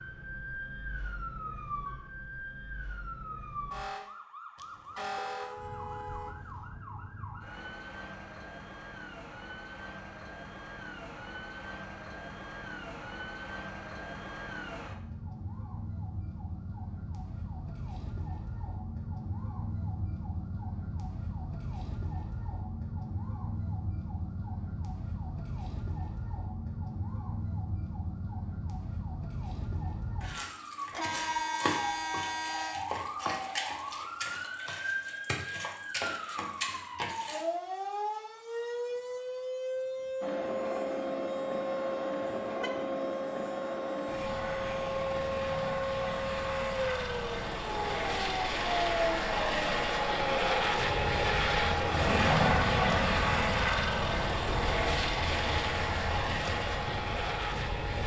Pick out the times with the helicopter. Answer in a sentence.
You can hear the helicopter from 40.2 to 58.0 s.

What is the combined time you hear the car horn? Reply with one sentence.
You can hear the car horn for 5 seconds altogether.